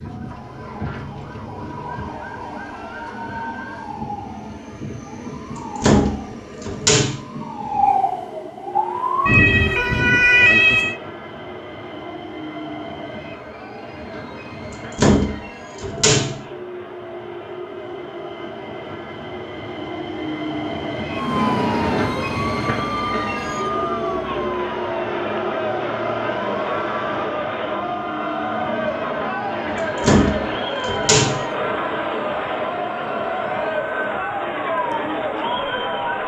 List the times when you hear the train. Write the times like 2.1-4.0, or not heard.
0.0-36.2.